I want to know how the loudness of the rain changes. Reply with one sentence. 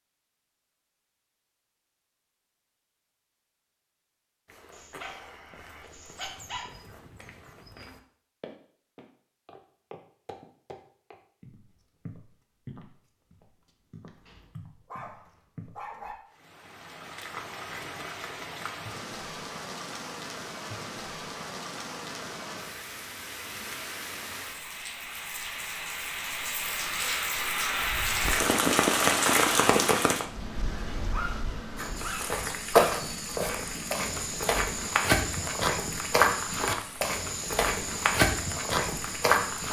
The loudness of the rain goes up, then down.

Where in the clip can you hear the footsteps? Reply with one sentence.
You can hear the footsteps from 4.5 to 15.8 s and from 31.8 to 39.6 s.